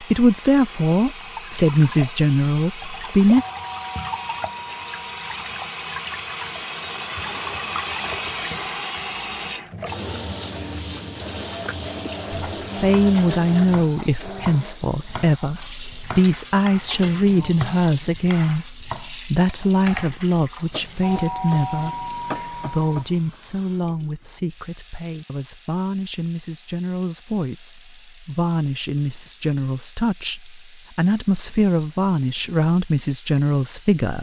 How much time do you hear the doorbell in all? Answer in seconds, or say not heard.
4 s.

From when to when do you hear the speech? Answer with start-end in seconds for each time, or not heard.
0.0-3.5, 12.3-34.1.